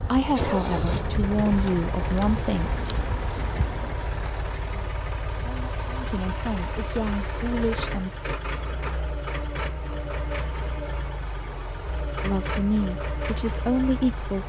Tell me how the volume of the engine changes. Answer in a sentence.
The volume of the engine stays about the same.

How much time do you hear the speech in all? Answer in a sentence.
You can hear the speech for 8 seconds altogether.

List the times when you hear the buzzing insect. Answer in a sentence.
The buzzing insect can be heard from 0.0 to 4.5 s.